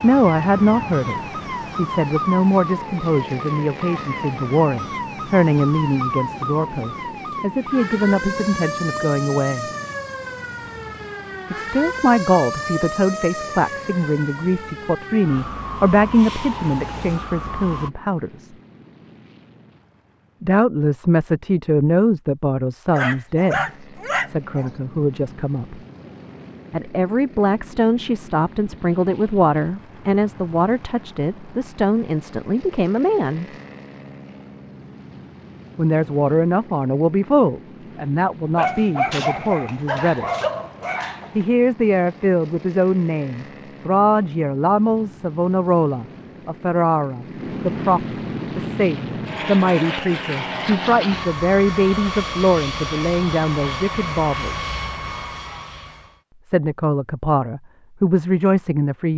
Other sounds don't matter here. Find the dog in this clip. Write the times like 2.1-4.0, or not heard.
22.9-24.7, 38.5-41.5.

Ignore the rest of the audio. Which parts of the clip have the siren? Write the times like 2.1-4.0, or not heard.
0.0-17.9.